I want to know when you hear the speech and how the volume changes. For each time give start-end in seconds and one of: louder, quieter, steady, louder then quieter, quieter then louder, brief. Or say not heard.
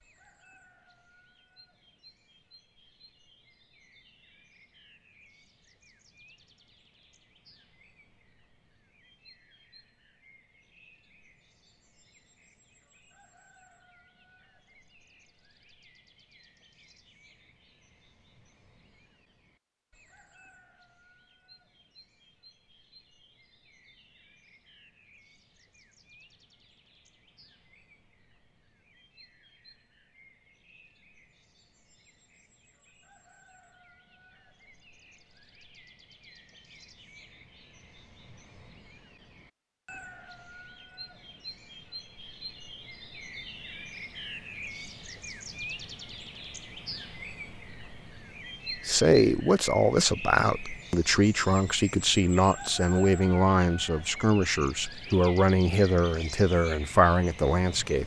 48.8-58.0 steady.